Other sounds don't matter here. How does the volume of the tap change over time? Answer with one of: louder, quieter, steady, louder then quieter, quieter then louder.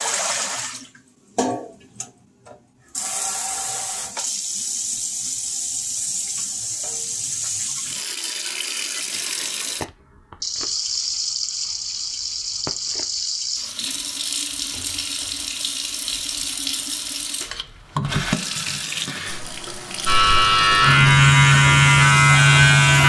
steady.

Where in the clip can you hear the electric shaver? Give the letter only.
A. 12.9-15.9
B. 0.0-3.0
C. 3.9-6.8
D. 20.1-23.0
D.